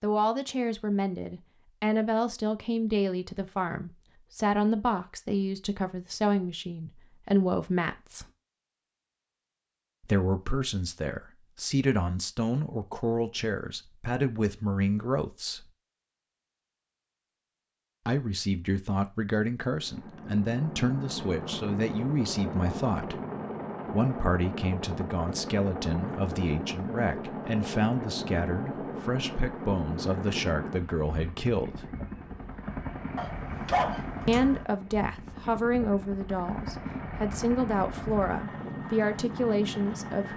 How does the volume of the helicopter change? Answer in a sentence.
The loudness of the helicopter stays about the same.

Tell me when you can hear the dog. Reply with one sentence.
The dog can be heard from 33.1 to 34.5 s.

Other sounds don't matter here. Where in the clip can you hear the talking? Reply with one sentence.
You can hear the talking from 0.0 to 8.2 s, from 10.0 to 15.7 s, from 18.1 to 23.2 s, from 23.9 to 31.9 s and from 34.2 to 40.3 s.